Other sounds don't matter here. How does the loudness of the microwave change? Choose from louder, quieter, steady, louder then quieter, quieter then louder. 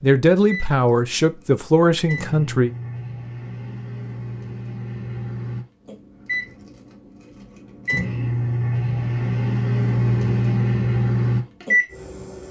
louder.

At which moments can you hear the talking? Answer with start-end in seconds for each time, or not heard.
0.0-2.7.